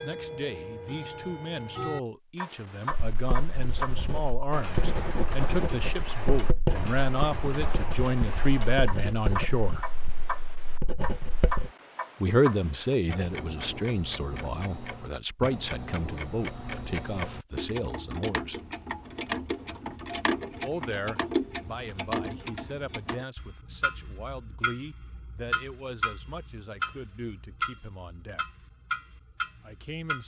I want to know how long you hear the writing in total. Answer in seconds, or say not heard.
9 s.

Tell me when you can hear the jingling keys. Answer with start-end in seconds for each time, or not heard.
not heard.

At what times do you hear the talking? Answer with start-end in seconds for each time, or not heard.
0.0-9.9, 12.2-18.6, 20.6-28.4, 29.6-30.2.